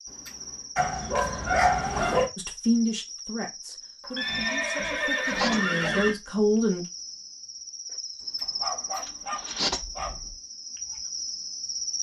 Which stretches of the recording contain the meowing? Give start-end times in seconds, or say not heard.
not heard.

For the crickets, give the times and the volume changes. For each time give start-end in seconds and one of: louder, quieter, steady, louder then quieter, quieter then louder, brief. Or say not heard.
0.0-11.9 louder.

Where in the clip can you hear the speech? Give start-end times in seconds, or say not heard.
2.4-6.8.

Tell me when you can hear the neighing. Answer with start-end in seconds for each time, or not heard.
0.1-0.8, 4.2-6.2, 8.2-9.6.